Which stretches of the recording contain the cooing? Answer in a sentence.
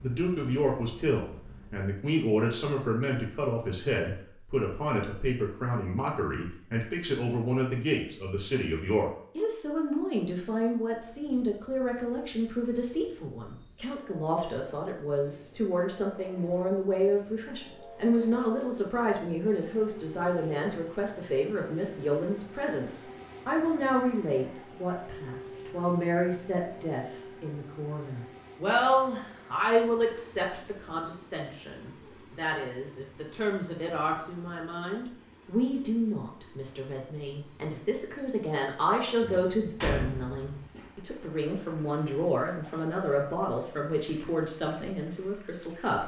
You can't hear the cooing here.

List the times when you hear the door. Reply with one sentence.
The door can be heard from 39.2 to 40.9 s.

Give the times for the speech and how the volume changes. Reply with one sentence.
You can hear the speech from 0.0 to 46.0 s, at a steady volume.